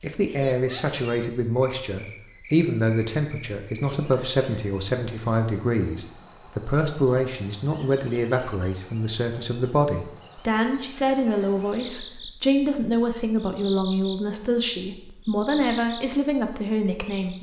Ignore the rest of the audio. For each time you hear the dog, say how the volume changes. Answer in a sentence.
You can't hear the dog here.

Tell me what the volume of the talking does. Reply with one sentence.
The volume of the talking stays about the same.